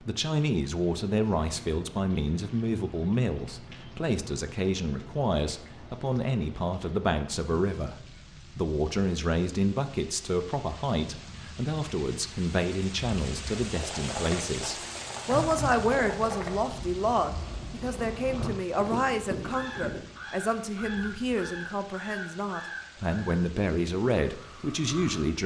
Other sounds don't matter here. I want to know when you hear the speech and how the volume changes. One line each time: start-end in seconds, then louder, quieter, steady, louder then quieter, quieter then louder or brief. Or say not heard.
0.0-25.4 steady.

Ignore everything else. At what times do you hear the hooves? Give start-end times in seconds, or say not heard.
13.6-20.1.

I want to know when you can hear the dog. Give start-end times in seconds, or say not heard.
not heard.